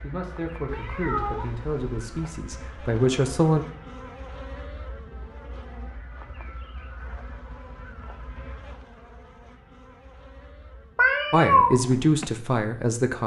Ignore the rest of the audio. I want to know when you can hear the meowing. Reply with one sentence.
You can hear the meowing from 0.7 to 2.1 s and from 10.9 to 11.8 s.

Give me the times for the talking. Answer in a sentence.
The talking can be heard from 0.0 to 3.6 s and from 11.3 to 13.2 s.